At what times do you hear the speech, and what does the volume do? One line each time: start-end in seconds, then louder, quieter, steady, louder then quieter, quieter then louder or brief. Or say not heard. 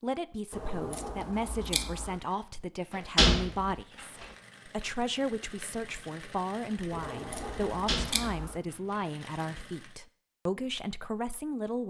0.0-11.8 steady.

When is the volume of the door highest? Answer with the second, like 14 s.
3 s.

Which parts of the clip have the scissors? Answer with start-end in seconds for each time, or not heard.
0.5-2.2, 6.9-8.6.